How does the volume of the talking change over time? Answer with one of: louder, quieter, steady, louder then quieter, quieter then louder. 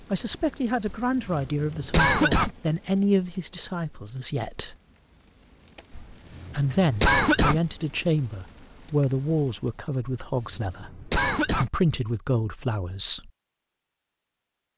steady.